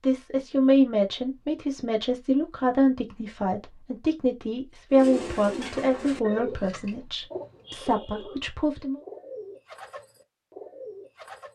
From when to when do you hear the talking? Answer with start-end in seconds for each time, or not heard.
0.0-9.0.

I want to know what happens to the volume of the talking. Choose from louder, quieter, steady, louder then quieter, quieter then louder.
quieter.